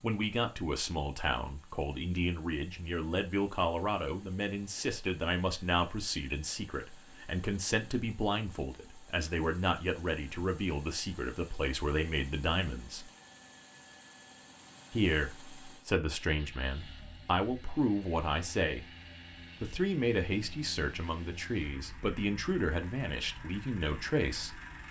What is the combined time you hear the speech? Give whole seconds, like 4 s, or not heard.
22 s.